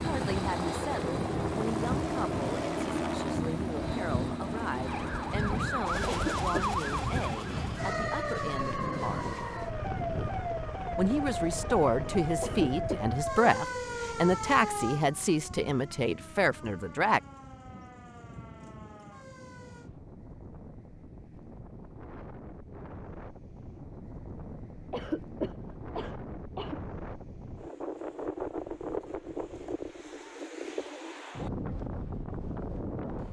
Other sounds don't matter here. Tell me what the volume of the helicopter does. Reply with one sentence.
The loudness of the helicopter goes down.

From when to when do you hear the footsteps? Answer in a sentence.
You can't hear the footsteps here.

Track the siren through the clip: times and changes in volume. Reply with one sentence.
The siren can be heard from 4.8 to 19.9 s, getting quieter.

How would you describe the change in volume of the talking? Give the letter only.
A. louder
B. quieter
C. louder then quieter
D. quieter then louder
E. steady
A.